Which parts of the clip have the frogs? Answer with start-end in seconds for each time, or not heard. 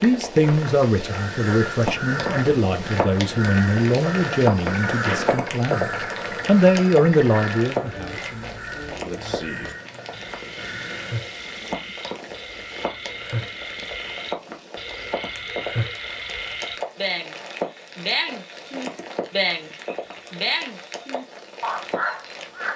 0.0-22.7.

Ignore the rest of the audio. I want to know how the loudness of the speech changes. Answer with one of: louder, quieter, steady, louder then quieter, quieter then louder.
quieter then louder.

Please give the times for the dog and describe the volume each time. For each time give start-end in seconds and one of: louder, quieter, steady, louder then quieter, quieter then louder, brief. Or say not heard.
not heard.